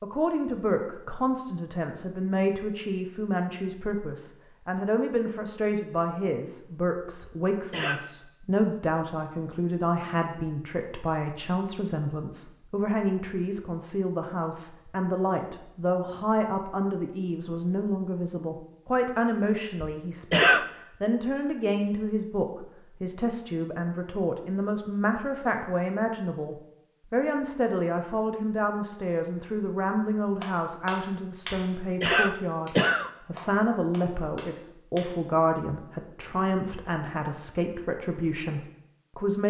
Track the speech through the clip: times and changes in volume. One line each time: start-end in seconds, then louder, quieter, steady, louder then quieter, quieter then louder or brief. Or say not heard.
0.0-39.4 steady.